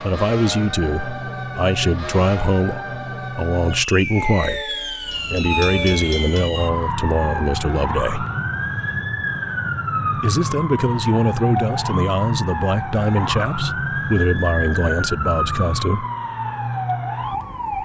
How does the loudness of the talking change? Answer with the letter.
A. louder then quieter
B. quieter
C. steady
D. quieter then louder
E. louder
C.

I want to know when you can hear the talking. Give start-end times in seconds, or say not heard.
0.0-8.2, 10.2-16.1.